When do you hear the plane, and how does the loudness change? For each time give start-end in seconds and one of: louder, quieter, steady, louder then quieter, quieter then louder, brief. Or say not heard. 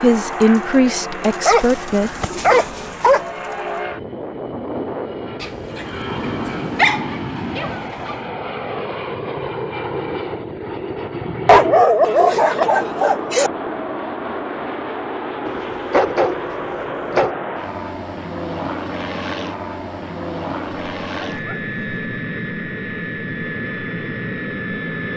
0.0-25.1 steady.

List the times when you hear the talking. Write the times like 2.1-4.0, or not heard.
0.0-2.1.